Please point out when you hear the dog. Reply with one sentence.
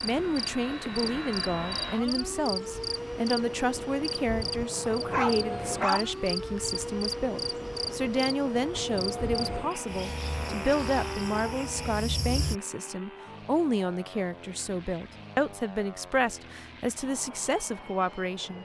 You can hear the dog from 5.0 to 6.0 s.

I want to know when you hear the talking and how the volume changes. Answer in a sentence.
The talking can be heard from 0.0 to 18.5 s, at a steady volume.